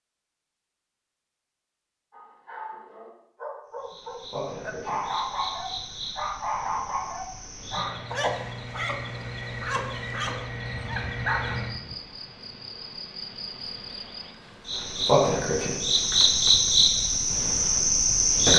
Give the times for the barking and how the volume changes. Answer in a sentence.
The barking can be heard from 2.1 to 11.9 s, getting louder.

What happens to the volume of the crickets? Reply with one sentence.
The loudness of the crickets goes up.